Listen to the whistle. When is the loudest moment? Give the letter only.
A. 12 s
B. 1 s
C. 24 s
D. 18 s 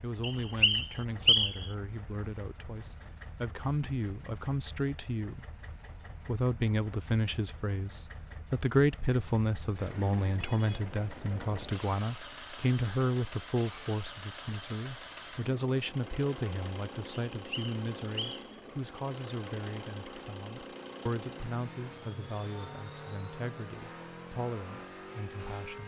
B.